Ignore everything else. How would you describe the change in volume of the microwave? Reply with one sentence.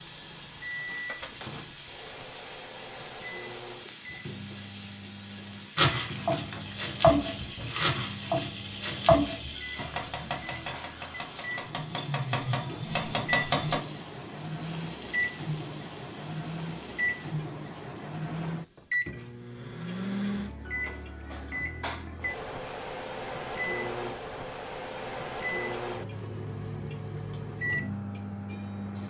The volume of the microwave goes up.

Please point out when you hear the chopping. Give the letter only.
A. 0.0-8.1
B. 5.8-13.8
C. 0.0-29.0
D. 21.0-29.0
B.